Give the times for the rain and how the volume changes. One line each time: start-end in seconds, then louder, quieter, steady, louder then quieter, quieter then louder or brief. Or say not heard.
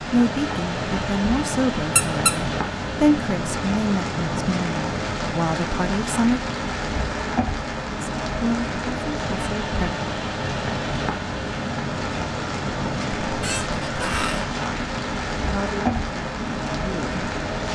0.0-17.6 steady.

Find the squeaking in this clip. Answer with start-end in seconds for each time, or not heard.
1.9-2.4, 13.3-14.4.